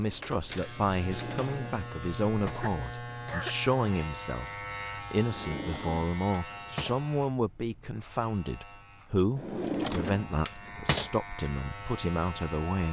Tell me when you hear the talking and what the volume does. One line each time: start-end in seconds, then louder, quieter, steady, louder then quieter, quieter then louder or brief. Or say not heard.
0.0-12.8 steady.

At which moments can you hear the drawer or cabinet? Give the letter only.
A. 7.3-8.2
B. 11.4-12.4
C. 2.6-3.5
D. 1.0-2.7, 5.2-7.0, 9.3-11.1
D.